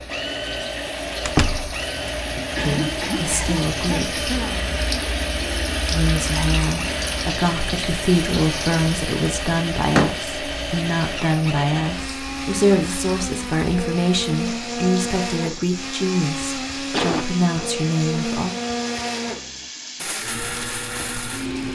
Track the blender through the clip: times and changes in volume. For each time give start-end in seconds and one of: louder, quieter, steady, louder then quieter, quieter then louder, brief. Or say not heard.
0.0-21.6 steady.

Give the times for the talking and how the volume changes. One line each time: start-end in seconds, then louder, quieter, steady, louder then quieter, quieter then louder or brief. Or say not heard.
2.6-4.2 brief
5.9-18.6 steady.